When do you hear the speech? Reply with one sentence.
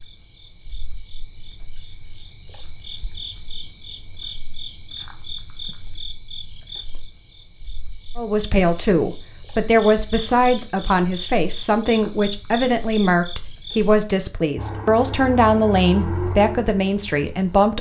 You can hear the speech from 8.2 to 17.7 s.